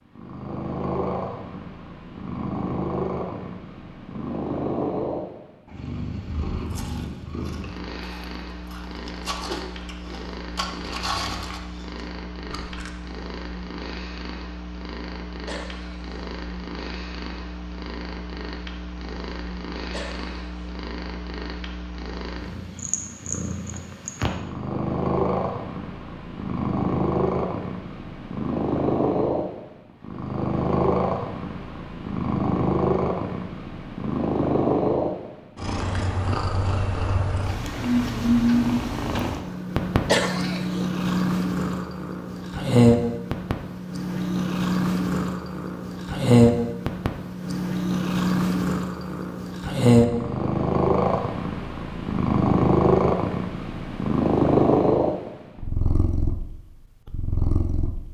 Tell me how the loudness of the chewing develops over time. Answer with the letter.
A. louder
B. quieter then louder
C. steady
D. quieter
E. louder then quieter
E.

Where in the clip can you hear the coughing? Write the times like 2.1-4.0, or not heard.
15.4-16.1, 19.9-20.7, 40.0-40.9.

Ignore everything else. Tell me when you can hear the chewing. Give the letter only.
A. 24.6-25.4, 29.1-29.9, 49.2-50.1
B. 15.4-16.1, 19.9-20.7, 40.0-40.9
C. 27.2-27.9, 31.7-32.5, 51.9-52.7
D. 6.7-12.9
D.